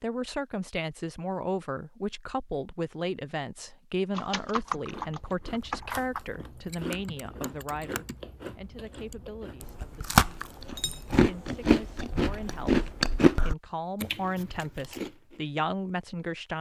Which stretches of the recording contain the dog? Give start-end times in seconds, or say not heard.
not heard.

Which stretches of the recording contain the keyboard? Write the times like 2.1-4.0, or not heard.
4.2-9.2.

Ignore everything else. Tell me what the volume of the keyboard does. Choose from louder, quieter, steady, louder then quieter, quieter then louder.
quieter then louder.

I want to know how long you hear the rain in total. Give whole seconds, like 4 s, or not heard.
not heard.